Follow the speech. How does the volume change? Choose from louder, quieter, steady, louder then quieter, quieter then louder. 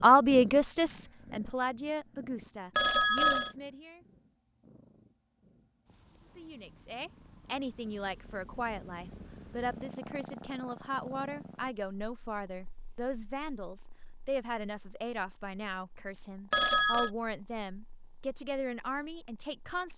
quieter.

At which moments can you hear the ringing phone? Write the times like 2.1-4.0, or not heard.
2.8-3.5, 16.5-17.1.